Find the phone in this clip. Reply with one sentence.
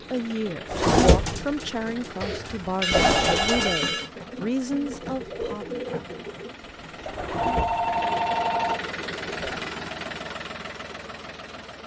You can hear the phone from 2.2 to 4.1 s and from 7.3 to 8.9 s.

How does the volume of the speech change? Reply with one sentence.
The volume of the speech stays about the same.